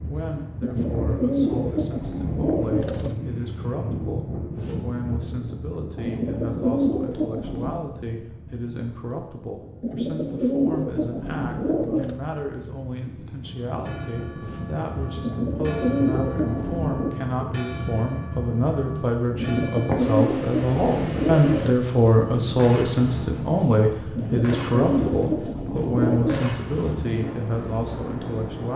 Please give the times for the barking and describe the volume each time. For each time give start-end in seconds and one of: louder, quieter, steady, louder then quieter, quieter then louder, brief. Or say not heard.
not heard.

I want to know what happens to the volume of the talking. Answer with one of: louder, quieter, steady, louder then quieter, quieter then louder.
louder.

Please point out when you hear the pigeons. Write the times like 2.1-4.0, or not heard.
0.6-3.2, 6.0-7.8, 9.8-12.2, 15.2-17.1, 19.4-21.8, 24.1-26.6.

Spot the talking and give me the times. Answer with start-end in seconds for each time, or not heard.
0.0-28.7.